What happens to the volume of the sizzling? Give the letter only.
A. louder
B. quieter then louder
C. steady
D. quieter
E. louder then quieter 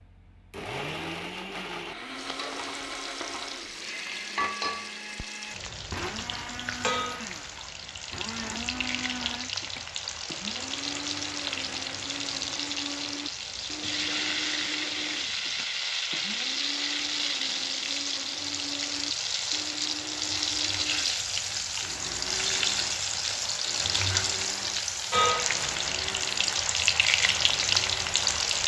A.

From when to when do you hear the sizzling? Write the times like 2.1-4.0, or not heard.
2.1-28.6.